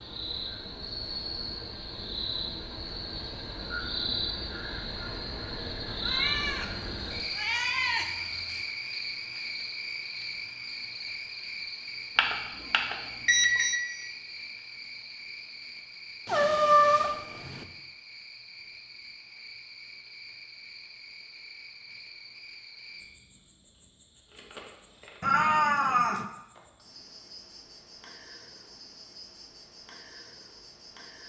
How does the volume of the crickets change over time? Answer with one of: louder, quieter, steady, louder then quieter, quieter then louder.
quieter.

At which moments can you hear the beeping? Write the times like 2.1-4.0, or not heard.
12.2-13.8.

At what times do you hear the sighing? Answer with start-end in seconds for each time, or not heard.
not heard.